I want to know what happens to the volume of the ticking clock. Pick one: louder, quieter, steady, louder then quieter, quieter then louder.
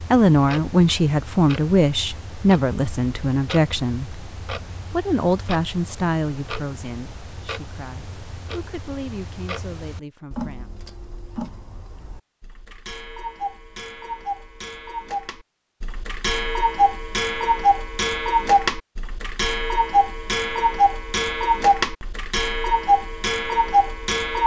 louder.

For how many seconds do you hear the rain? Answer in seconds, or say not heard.
not heard.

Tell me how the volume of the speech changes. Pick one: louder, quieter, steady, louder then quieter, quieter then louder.
quieter.